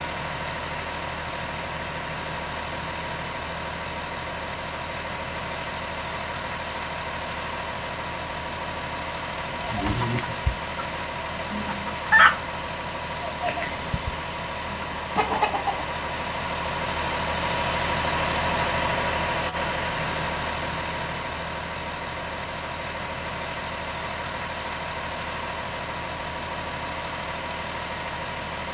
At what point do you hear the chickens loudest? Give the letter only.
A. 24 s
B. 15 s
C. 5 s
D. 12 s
D.